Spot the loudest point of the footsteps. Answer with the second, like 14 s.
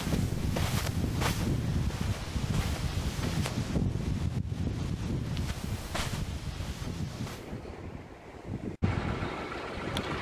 1 s.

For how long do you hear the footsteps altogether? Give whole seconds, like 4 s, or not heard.
6 s.